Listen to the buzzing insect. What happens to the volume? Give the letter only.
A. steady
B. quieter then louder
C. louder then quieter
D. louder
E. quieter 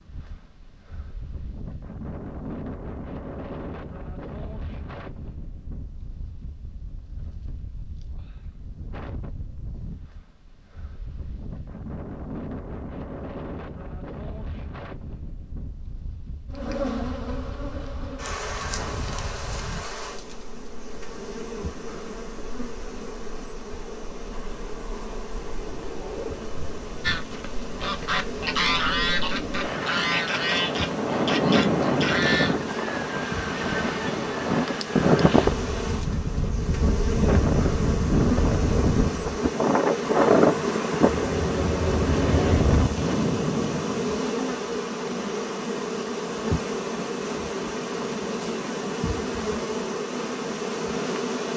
D.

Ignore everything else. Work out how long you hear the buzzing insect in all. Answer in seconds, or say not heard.
35 s.